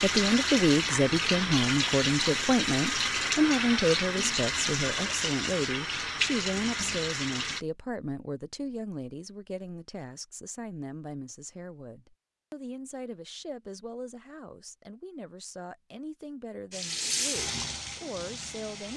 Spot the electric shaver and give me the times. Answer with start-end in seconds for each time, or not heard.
not heard.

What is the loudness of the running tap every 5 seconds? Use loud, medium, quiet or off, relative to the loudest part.
loud, loud, off, medium.